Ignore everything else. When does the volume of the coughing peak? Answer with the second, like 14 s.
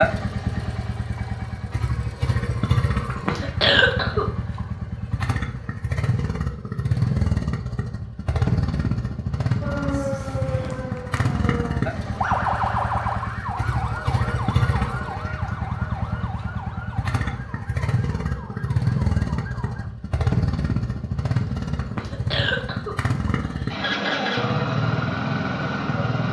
4 s.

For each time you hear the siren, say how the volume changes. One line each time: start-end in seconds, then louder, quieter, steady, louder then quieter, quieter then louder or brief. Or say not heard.
9.6-19.9 louder then quieter.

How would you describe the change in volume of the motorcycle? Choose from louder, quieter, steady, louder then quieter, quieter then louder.
steady.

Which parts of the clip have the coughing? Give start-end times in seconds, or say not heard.
3.0-4.6, 21.8-23.8.